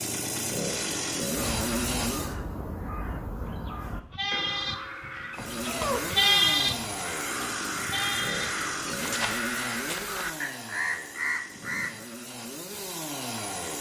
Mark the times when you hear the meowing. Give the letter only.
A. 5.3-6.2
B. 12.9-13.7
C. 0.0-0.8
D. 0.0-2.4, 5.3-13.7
A.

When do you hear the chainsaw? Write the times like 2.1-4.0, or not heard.
0.0-2.4, 5.3-13.7.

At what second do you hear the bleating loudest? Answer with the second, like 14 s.
6 s.